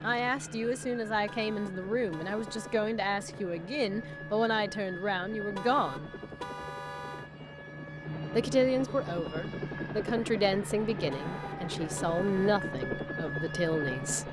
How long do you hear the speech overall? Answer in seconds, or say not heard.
12 s.